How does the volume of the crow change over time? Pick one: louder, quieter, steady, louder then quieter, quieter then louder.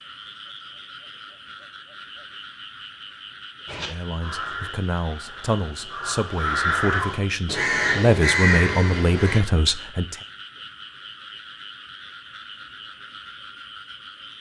quieter then louder.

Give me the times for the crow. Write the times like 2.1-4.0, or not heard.
3.6-9.4.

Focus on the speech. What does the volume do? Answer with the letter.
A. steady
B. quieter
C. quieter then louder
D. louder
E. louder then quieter
D.